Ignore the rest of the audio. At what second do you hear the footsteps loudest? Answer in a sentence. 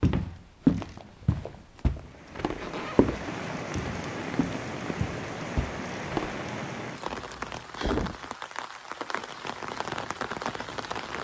The volume of the footsteps peaks at 1 second.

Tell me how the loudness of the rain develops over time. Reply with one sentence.
The volume of the rain stays about the same.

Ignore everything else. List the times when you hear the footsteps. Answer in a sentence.
The footsteps can be heard from 0.0 to 6.4 s.